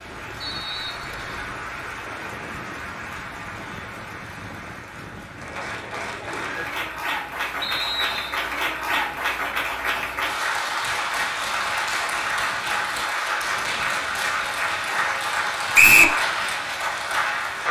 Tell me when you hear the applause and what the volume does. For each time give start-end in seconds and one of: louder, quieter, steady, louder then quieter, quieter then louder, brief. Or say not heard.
0.0-17.6 louder.